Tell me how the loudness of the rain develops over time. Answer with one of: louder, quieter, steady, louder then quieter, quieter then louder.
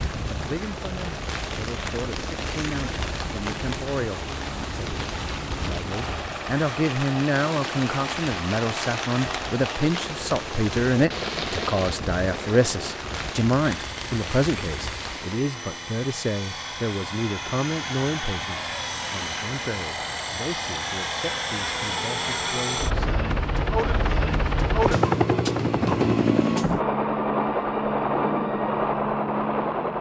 steady.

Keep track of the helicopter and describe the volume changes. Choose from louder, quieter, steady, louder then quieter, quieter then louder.
louder.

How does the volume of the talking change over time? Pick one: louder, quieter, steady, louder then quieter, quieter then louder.
louder then quieter.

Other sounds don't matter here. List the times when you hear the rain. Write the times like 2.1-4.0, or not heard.
0.0-15.4.